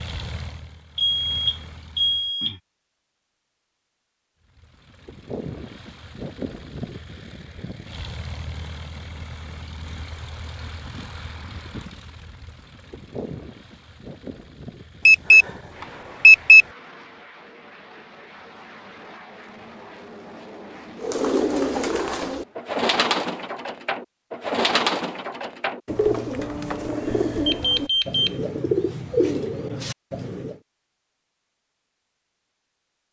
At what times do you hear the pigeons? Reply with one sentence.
You can hear the pigeons from 20.9 to 30.6 s.